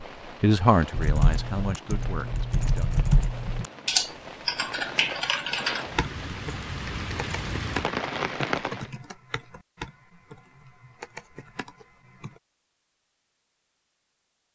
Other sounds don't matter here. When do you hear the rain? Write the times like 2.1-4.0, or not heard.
0.0-8.9.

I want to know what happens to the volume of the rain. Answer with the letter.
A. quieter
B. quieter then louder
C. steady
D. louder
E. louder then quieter
D.